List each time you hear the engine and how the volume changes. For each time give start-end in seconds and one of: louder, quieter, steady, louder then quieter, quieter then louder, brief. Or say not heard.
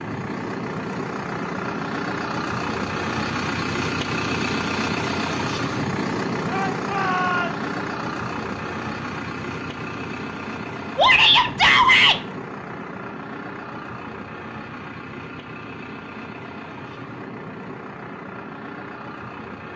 0.0-19.7 quieter.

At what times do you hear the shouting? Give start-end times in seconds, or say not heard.
6.5-7.6, 10.9-12.2.